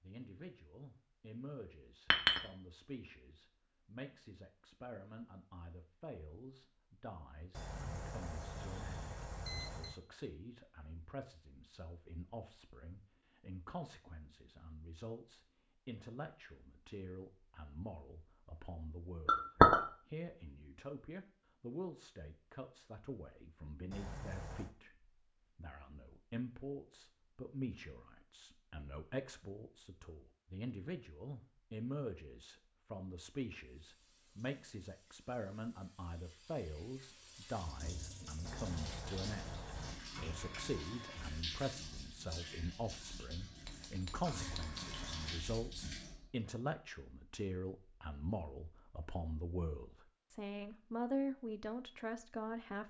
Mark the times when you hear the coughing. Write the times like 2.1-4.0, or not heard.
not heard.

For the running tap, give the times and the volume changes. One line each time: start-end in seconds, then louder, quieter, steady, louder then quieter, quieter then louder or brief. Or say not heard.
33.6-46.4 louder.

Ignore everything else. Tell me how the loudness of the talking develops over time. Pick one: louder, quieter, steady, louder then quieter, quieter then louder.
louder.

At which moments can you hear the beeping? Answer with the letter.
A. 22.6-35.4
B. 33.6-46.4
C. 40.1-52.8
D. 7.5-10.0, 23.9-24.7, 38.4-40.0
D.